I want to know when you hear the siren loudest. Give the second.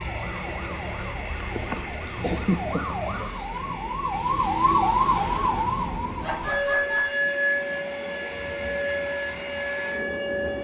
5 s.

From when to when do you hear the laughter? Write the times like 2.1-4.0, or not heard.
1.4-3.6, 6.2-7.1.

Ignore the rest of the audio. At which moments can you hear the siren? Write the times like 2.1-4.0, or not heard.
0.0-10.5.